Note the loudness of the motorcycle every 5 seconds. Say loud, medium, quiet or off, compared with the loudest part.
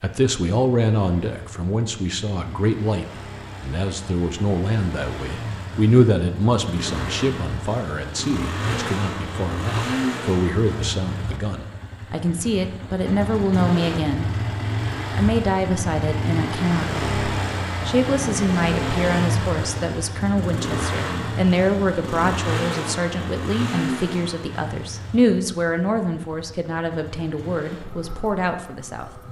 quiet, loud, loud, loud, loud, quiet.